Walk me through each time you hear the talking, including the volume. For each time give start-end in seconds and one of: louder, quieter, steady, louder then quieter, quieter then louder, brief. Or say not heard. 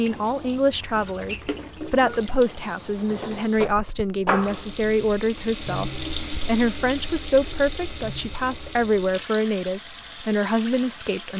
0.0-11.3 steady.